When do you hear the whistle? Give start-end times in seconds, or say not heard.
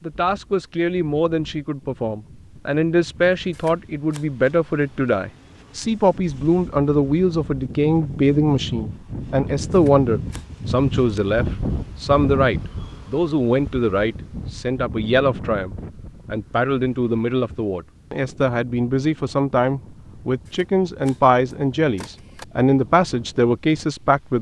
not heard.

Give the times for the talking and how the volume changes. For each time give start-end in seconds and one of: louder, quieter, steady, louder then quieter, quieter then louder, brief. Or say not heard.
0.0-24.3 steady.